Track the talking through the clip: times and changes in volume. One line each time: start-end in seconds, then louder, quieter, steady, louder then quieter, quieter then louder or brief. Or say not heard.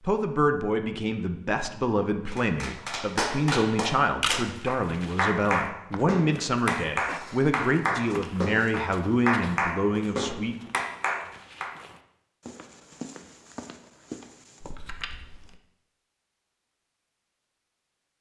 0.1-10.7 steady.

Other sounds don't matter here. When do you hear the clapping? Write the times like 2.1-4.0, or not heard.
2.3-11.7.